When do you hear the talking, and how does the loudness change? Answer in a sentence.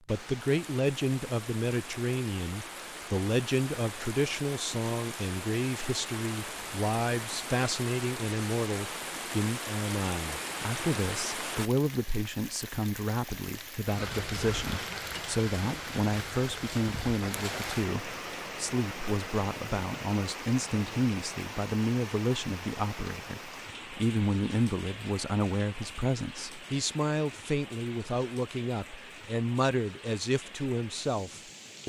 You can hear the talking from 0.1 to 31.8 s, at a steady volume.